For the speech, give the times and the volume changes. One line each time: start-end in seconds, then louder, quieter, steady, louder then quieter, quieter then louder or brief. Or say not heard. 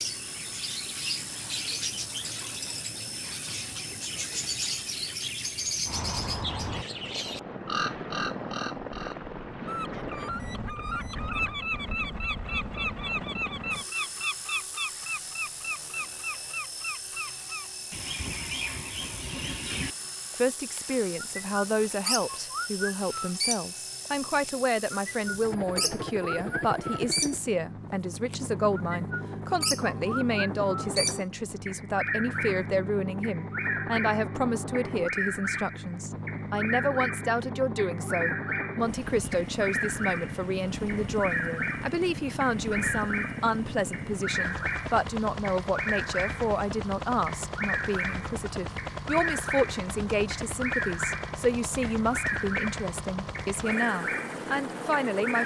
20.4-55.4 steady.